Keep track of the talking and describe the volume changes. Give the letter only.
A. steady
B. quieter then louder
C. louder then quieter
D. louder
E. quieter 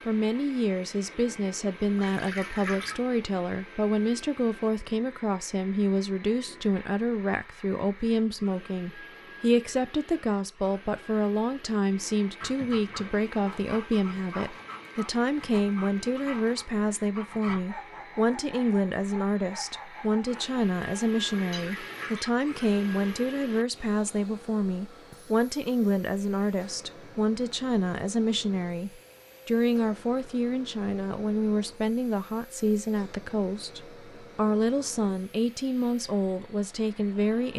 A.